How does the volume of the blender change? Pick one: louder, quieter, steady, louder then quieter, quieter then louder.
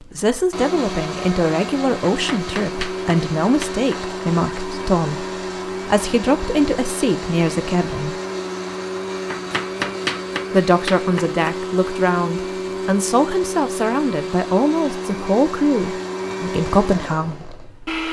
steady.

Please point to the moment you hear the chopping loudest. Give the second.
10 s.